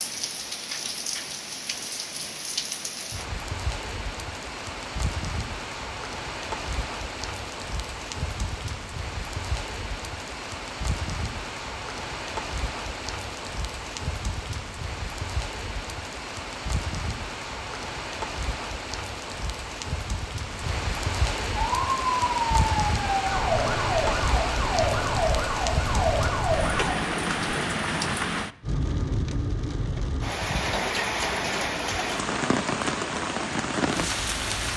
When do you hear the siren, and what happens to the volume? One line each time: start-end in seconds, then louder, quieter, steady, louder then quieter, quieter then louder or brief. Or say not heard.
21.6-26.9 steady.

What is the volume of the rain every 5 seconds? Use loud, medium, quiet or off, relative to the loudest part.
medium, medium, medium, medium, loud, loud, loud.